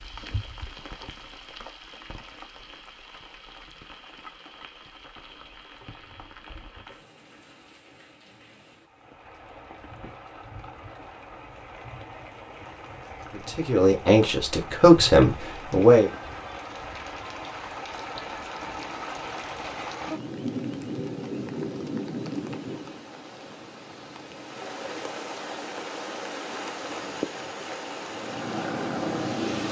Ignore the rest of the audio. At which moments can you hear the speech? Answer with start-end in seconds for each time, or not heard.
13.3-16.1.